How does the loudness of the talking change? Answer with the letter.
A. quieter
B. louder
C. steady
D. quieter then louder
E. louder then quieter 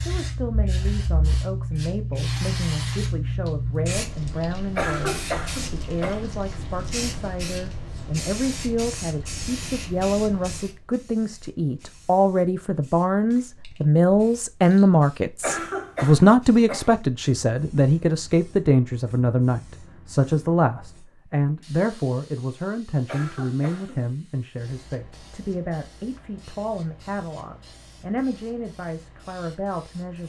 E.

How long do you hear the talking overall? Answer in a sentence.
The talking can be heard for 30 seconds in total.